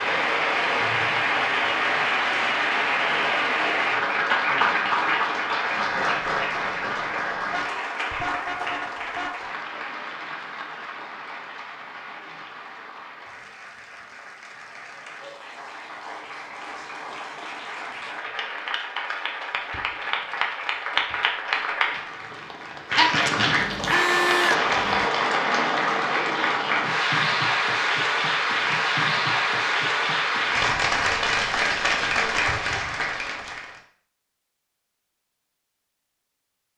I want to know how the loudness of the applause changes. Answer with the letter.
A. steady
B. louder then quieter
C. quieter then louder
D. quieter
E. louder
C.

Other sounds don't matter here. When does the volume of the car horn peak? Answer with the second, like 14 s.
24 s.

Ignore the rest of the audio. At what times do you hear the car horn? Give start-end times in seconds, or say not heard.
7.5-9.3, 23.6-25.1.